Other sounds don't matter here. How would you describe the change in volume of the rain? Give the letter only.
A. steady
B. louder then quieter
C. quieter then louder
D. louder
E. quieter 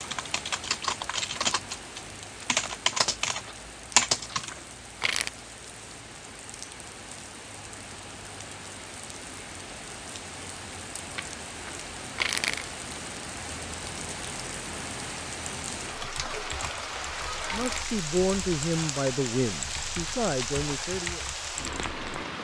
D.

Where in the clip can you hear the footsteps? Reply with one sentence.
You can't hear the footsteps here.